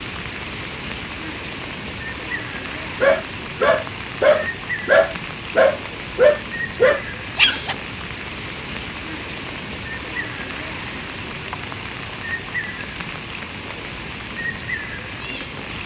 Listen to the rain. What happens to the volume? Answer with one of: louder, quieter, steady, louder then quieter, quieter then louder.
steady.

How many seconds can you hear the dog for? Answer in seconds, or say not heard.
5 s.